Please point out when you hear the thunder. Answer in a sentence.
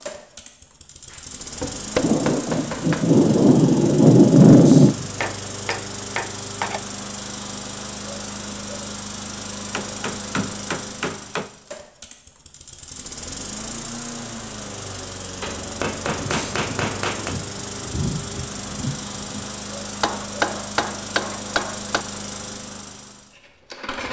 The thunder can be heard from 2.0 to 5.0 s and from 16.1 to 19.2 s.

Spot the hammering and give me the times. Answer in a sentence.
You can hear the hammering from 1.1 to 3.0 s, from 5.2 to 6.8 s, from 9.7 to 11.5 s, from 15.4 to 17.4 s and from 20.0 to 22.1 s.